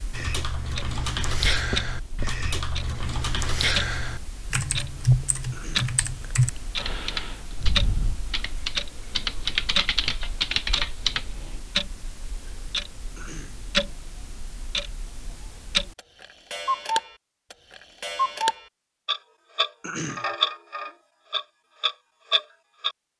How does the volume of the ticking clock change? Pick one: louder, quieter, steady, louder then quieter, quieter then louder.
louder.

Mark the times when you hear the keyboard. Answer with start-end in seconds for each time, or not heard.
0.1-11.3.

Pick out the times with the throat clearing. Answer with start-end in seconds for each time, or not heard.
5.5-6.0, 13.2-13.6, 19.8-20.2.